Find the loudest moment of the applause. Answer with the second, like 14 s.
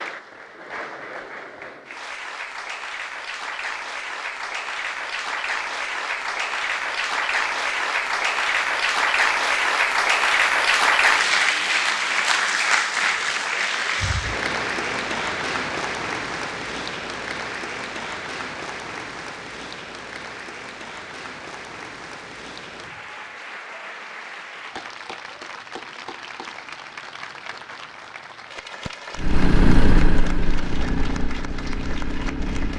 11 s.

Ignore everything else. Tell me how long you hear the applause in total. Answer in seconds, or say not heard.
33 s.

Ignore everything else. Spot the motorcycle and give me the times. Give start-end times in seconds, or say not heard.
29.1-32.7.